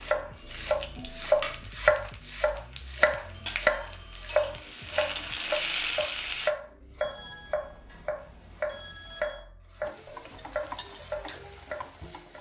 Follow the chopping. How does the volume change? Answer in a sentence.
The loudness of the chopping goes down.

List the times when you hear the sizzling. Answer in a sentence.
The sizzling can be heard from 0.0 to 6.5 s and from 9.8 to 12.3 s.